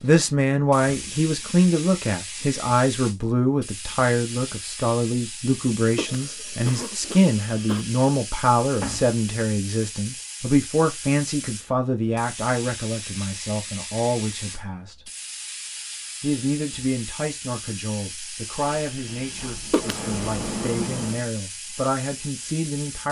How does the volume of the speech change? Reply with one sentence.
The volume of the speech goes down.